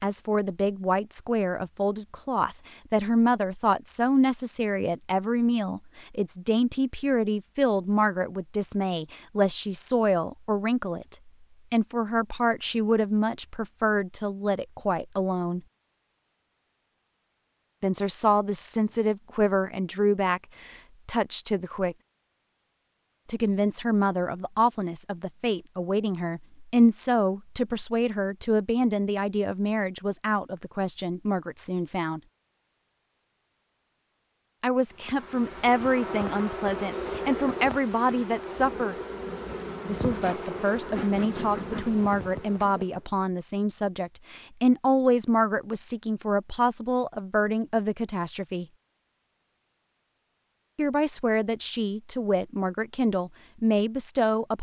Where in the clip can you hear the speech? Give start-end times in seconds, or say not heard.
0.0-15.6, 17.8-21.9, 23.2-32.2, 34.6-39.0, 39.9-48.6, 50.8-54.5.